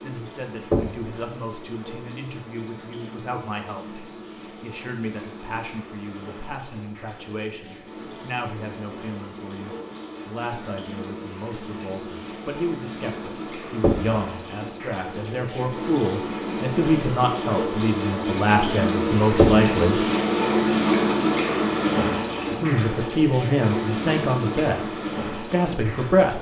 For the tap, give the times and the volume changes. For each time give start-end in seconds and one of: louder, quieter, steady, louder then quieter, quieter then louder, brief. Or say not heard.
0.0-26.3 louder.